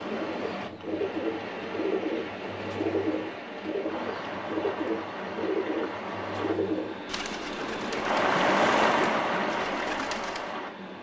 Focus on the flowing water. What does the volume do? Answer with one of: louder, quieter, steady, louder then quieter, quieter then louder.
louder.